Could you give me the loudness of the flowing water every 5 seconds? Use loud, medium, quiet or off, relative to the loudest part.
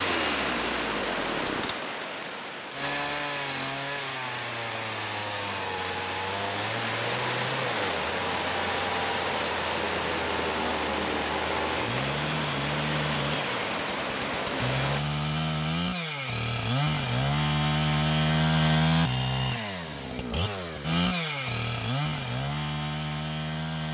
loud, loud, loud, off, off.